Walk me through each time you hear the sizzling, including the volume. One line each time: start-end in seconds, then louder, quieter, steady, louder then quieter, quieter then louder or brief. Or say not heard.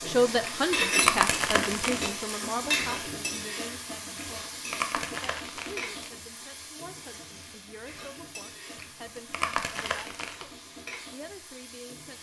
0.0-12.1 quieter.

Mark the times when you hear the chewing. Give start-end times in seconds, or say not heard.
0.4-2.4, 4.2-6.1, 8.8-10.4.